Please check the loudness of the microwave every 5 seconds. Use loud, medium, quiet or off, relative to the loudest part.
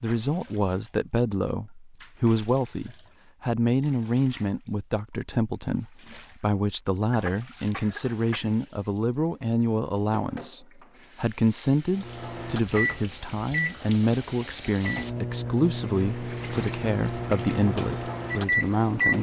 off, off, loud, loud.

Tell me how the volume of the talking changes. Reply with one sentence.
The volume of the talking stays about the same.